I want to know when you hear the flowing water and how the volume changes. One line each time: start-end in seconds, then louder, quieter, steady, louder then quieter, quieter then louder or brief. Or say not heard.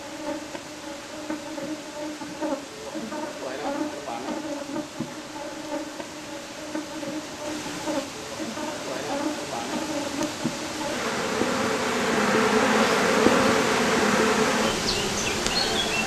0.0-16.0 louder.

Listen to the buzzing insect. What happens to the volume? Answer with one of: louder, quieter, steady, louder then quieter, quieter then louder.
louder.